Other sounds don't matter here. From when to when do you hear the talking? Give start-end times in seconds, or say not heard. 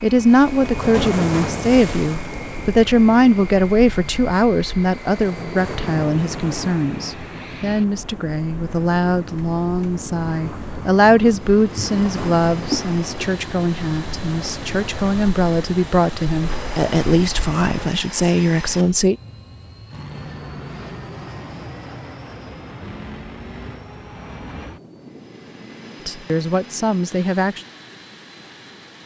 0.0-19.1, 26.1-27.6.